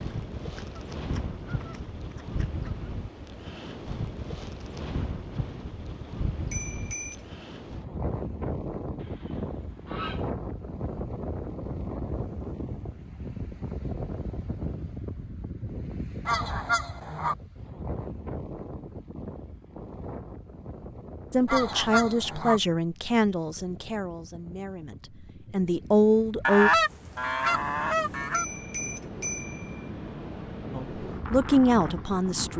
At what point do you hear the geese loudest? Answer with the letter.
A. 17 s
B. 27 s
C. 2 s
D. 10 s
B.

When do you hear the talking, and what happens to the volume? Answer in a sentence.
You can hear the talking from 21.3 to 26.7 s, getting quieter then louder; and briefly from 30.7 to 32.5 s.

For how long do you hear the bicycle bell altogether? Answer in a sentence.
You can hear the bicycle bell for 2 seconds altogether.